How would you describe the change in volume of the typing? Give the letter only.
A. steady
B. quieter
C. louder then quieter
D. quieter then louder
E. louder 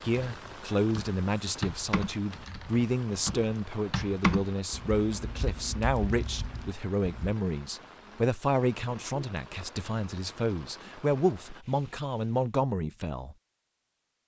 C.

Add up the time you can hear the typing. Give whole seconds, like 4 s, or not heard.
7 s.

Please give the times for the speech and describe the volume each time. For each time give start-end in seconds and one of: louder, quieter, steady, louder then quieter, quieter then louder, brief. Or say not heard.
0.0-13.3 steady.